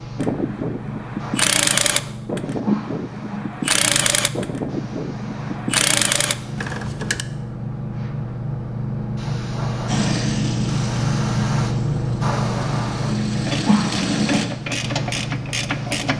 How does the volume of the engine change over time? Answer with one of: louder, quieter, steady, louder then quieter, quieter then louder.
quieter then louder.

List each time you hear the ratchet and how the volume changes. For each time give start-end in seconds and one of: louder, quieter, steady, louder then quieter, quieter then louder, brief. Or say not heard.
0.1-7.2 quieter then louder
13.3-16.1 brief.